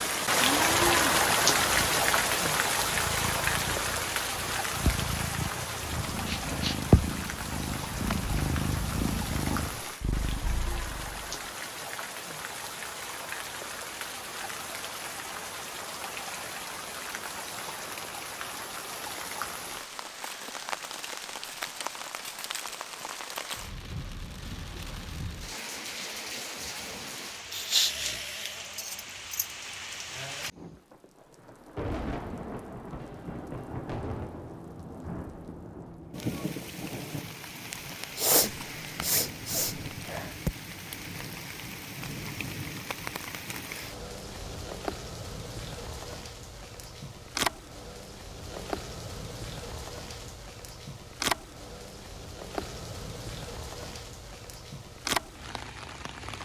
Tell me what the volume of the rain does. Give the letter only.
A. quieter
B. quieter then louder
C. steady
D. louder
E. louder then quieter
A.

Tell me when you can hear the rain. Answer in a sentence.
You can hear the rain from 0.0 to 56.4 s.